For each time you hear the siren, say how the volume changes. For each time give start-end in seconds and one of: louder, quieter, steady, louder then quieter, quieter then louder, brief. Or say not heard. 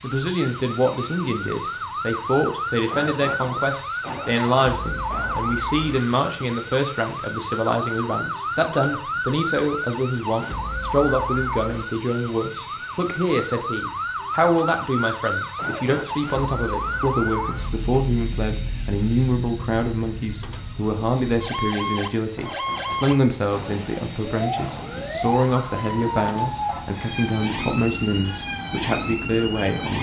0.0-29.9 steady.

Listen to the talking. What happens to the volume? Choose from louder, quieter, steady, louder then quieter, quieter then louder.
steady.